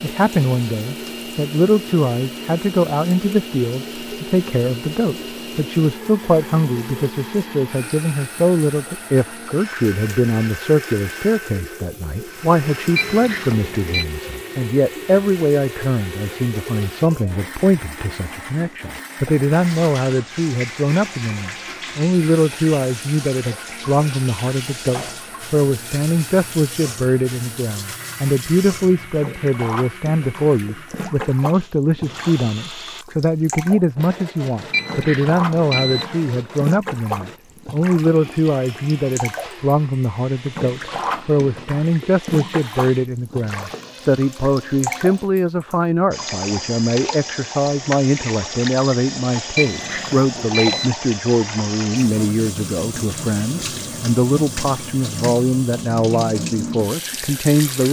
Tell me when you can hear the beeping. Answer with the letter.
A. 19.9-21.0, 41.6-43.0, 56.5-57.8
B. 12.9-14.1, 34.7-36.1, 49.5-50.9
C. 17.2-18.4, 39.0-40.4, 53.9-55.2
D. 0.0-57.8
B.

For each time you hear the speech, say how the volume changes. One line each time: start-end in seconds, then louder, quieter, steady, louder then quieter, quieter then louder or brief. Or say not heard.
0.0-57.8 steady.